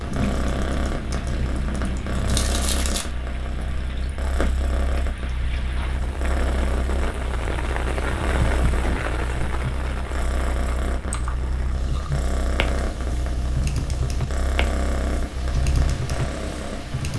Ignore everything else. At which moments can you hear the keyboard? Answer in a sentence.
You can hear the keyboard from 0.0 to 2.5 s and from 11.1 to 17.1 s.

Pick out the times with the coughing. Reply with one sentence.
The coughing can't be heard in this clip.